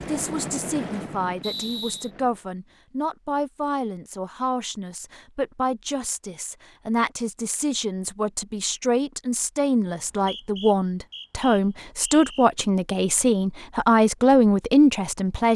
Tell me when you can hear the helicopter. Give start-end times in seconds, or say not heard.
0.0-2.5.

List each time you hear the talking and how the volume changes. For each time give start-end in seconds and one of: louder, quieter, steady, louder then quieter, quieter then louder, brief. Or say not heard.
0.1-15.5 louder.